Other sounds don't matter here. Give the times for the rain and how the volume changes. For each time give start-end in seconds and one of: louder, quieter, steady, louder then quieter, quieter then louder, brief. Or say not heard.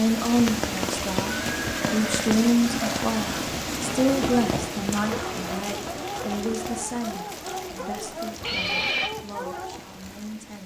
0.0-10.6 quieter.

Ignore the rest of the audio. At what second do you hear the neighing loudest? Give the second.
9 s.